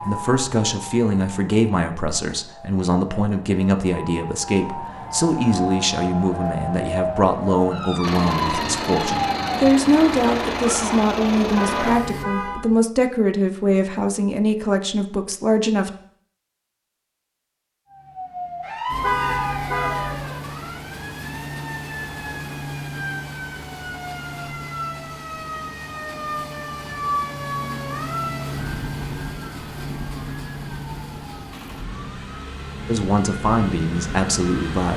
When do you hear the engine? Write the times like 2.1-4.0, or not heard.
8.0-12.2, 18.9-34.9.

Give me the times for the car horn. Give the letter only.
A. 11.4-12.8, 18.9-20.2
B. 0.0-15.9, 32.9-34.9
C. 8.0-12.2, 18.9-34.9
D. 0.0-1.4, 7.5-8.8
A.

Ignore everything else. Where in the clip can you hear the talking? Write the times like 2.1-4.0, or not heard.
0.0-15.9, 32.9-34.9.